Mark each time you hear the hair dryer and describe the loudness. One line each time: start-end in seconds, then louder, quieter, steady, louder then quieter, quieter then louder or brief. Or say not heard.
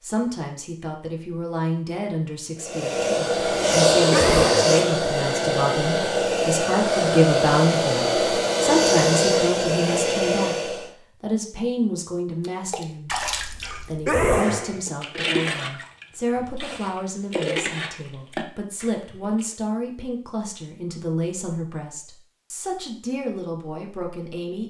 2.6-10.9 steady.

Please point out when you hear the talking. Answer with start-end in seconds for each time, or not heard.
0.0-24.6.